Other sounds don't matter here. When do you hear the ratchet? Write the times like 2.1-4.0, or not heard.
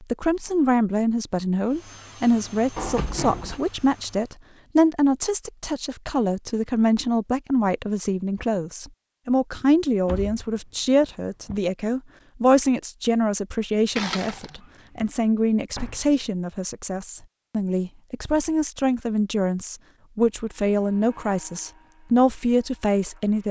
13.9-15.1.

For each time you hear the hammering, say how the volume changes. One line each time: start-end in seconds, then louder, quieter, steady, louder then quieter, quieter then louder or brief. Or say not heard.
not heard.